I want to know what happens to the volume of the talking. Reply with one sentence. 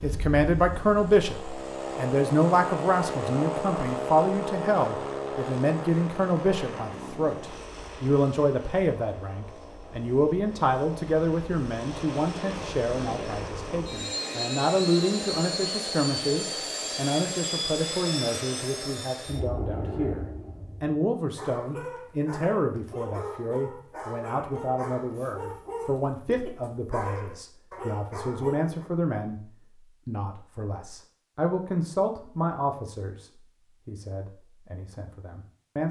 The loudness of the talking goes down.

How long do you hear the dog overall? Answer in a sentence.
The dog can be heard for 8 seconds in total.